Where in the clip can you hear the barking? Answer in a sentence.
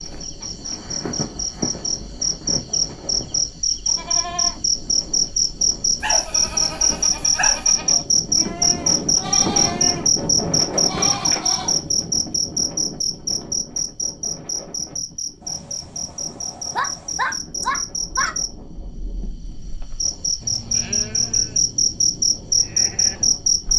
The barking can be heard from 6.0 to 7.7 s and from 16.6 to 18.4 s.